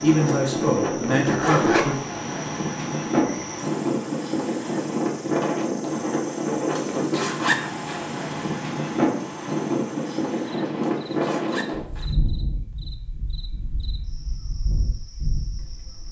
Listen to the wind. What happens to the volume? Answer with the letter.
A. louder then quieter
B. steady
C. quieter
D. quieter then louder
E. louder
C.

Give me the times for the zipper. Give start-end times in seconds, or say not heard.
1.1-2.1, 6.7-8.1, 10.8-12.2.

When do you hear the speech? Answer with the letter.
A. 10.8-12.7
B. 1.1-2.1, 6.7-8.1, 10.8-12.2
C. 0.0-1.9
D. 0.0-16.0
C.